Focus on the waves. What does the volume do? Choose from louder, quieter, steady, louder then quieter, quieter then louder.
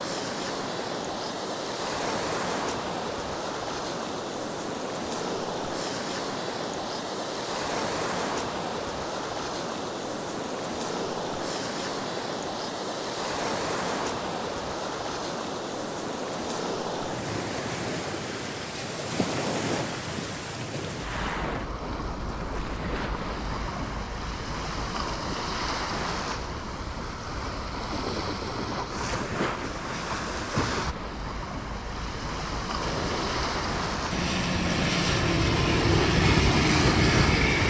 steady.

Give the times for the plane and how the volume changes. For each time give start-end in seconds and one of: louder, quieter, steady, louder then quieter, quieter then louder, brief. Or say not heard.
32.8-37.6 louder.